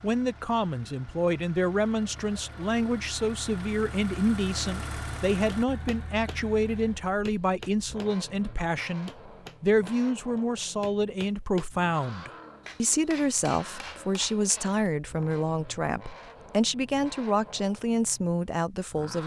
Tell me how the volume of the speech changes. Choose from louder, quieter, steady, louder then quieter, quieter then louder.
steady.